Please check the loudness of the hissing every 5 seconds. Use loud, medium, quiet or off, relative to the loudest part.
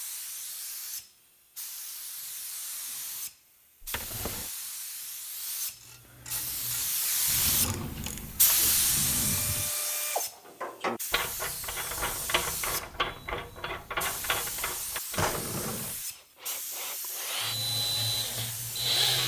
medium, loud, medium, medium.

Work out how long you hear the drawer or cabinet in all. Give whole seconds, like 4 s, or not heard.
4 s.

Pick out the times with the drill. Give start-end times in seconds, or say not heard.
16.1-19.2.